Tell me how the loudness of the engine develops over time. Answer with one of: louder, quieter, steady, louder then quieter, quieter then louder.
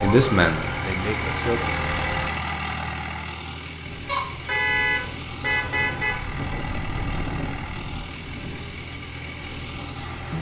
quieter.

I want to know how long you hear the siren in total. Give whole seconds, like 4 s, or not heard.
2 s.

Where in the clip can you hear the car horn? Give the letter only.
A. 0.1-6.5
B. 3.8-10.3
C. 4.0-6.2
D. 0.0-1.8
C.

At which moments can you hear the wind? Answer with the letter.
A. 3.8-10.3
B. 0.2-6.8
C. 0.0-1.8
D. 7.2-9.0
A.